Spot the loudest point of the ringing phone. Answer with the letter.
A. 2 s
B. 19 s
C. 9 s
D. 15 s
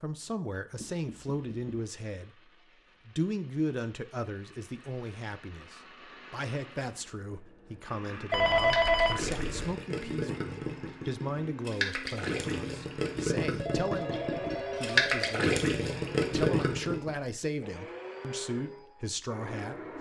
C.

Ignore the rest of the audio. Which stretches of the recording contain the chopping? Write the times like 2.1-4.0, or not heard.
not heard.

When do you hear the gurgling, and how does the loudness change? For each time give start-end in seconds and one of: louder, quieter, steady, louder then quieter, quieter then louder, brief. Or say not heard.
8.6-17.1 louder.